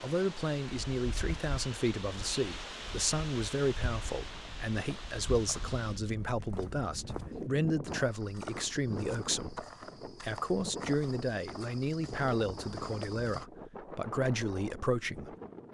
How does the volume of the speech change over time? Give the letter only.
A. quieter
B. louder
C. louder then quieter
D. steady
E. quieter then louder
D.